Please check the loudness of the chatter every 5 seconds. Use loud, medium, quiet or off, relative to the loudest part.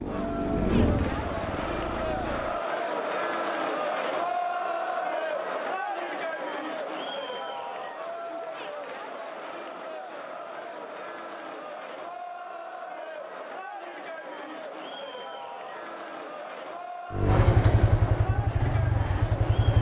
loud, loud, medium, medium.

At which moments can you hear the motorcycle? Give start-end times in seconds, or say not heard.
0.0-2.6, 17.1-19.7.